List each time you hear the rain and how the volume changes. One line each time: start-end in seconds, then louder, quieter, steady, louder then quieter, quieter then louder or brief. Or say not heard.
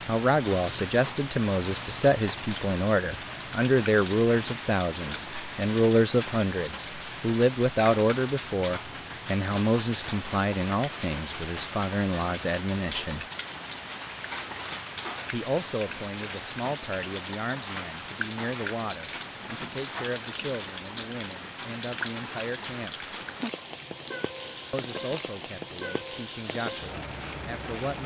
0.0-28.0 steady.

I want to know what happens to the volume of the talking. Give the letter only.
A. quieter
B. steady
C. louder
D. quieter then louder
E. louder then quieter
A.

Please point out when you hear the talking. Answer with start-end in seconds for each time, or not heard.
0.1-13.2, 15.3-22.9, 24.7-28.0.